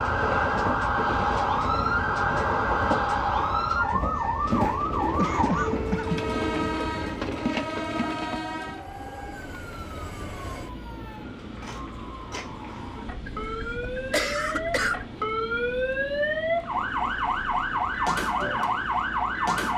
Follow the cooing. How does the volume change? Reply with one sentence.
The loudness of the cooing goes down.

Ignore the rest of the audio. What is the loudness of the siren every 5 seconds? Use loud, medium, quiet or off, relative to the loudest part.
loud, medium, medium, loud.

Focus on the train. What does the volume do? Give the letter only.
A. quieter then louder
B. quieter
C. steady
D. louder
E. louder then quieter
B.